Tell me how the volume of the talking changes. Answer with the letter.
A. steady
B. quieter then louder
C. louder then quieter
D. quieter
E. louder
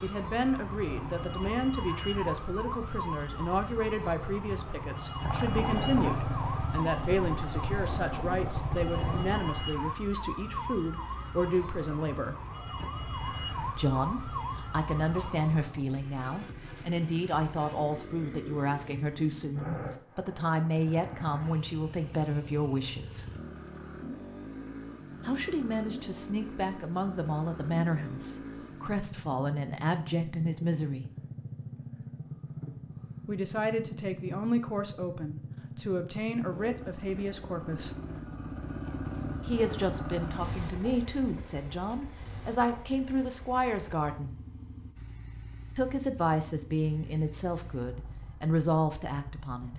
A.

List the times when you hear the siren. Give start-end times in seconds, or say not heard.
0.0-15.6.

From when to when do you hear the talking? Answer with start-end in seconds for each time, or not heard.
0.0-12.3, 13.8-23.2, 25.2-31.1, 33.2-38.0, 39.5-44.4, 45.8-49.7.